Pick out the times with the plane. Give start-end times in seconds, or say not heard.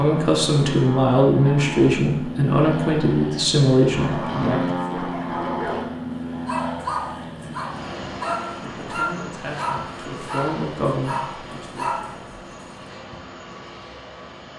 0.0-14.5.